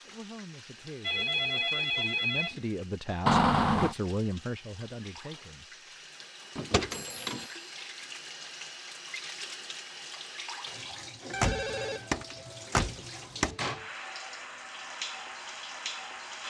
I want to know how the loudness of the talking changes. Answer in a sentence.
The loudness of the talking goes up, then down.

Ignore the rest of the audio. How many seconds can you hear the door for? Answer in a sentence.
The door can be heard for 4 seconds in total.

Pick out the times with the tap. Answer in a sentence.
You can hear the tap from 0.0 to 16.4 s.